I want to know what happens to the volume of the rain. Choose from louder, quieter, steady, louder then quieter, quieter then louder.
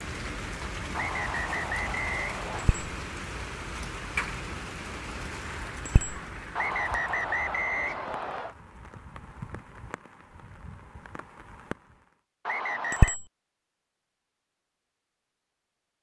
quieter.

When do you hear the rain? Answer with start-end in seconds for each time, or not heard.
0.0-12.2.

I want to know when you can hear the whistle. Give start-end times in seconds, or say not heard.
0.9-2.7, 6.5-8.6, 12.4-13.2.